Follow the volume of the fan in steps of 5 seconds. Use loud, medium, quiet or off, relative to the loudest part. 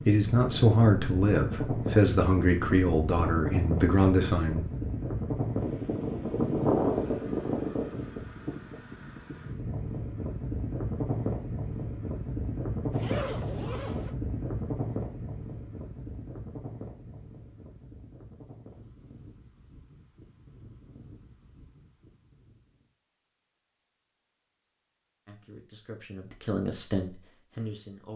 loud, loud, loud, quiet, quiet, off.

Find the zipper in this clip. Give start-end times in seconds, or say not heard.
12.9-14.2.